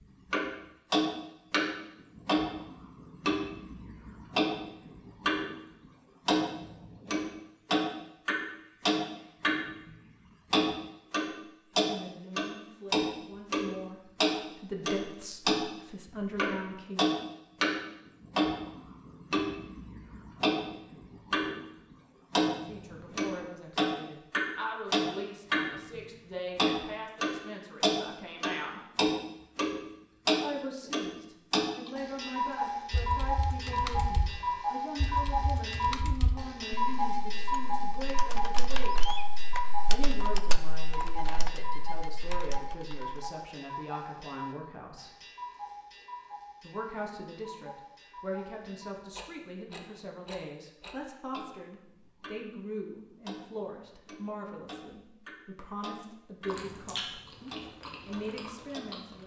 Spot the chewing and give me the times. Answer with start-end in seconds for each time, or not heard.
56.5-59.2.